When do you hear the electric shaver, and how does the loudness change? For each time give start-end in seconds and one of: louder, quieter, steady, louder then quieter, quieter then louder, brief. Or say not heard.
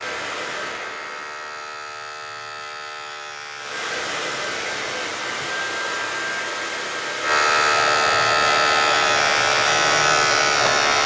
0.0-11.0 louder.